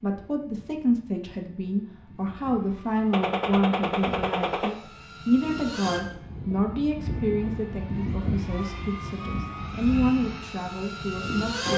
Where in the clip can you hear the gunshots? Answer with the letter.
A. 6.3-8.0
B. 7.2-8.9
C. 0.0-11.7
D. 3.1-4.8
D.